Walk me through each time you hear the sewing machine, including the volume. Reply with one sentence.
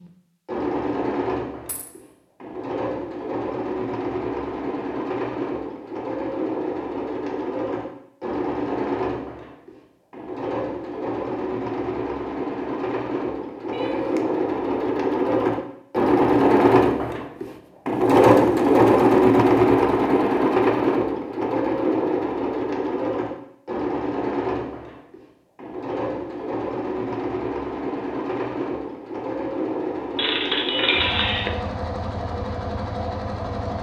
You can hear the sewing machine from 0.0 to 33.7 s, getting louder then quieter.